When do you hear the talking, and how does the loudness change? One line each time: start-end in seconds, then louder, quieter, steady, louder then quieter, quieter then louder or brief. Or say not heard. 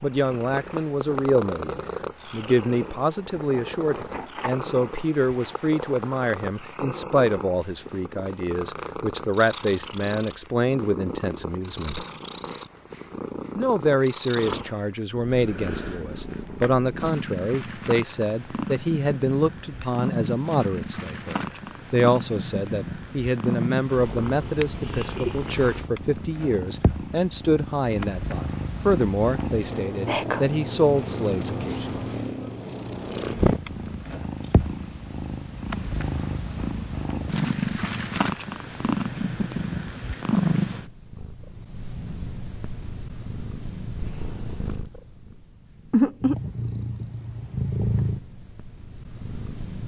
0.0-12.1 steady
13.6-32.0 steady.